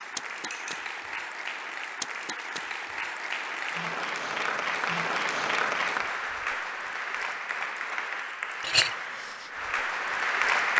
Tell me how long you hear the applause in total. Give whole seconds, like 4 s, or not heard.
11 s.